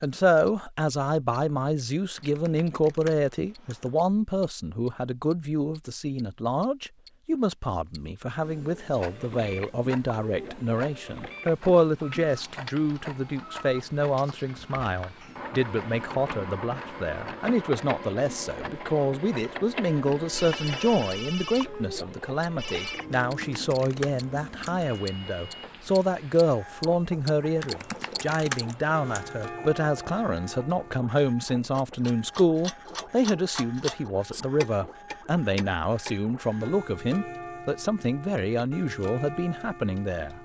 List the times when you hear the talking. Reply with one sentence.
You can hear the talking from 0.0 to 40.3 s.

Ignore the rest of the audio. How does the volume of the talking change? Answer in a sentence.
The volume of the talking stays about the same.